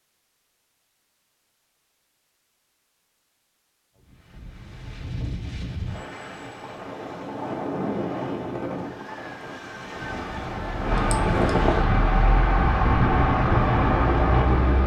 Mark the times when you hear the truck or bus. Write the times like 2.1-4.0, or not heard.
9.9-14.8.